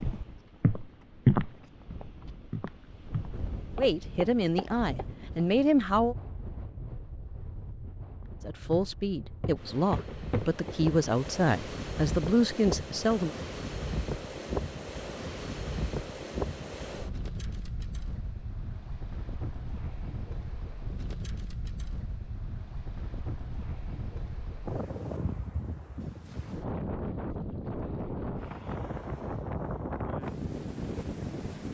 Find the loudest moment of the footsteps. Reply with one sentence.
The loudest moment of the footsteps is at 1 second.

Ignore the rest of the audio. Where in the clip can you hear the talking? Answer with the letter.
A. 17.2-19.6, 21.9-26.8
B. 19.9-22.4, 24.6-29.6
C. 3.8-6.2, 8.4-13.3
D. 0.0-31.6
C.